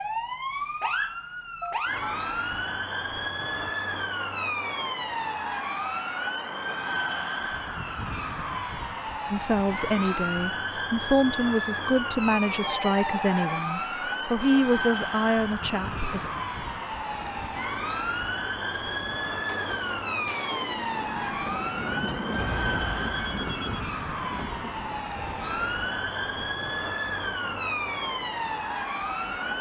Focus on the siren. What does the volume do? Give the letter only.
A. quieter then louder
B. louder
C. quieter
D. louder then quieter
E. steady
E.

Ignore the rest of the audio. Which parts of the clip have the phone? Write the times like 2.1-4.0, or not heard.
1.6-2.1, 12.6-13.7, 22.4-23.8.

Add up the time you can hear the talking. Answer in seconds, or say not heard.
7 s.